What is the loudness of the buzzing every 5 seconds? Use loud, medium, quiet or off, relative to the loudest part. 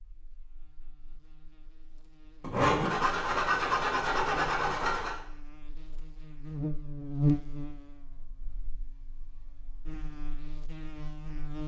quiet, loud, medium.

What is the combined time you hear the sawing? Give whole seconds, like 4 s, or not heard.
3 s.